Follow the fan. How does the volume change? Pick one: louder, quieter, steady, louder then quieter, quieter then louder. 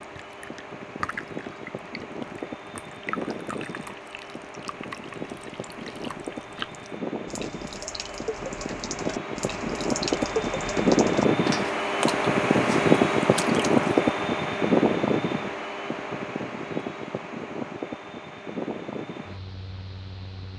louder then quieter.